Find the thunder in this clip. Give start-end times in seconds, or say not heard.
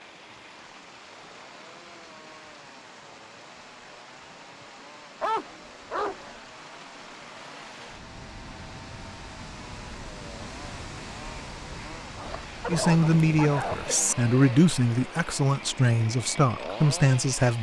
12.7-14.2.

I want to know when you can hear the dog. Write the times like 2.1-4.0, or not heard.
5.2-6.3, 12.2-14.0.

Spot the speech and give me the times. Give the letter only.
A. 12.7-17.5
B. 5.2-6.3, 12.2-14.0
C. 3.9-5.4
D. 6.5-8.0
A.